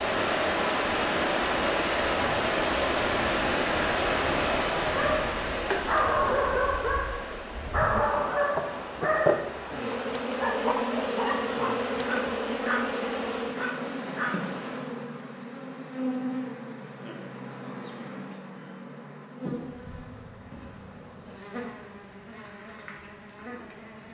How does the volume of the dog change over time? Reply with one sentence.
The loudness of the dog goes down.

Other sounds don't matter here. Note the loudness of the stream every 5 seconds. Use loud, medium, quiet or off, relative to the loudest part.
loud, medium, quiet, off, off.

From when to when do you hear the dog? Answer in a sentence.
The dog can be heard from 4.8 to 14.6 s.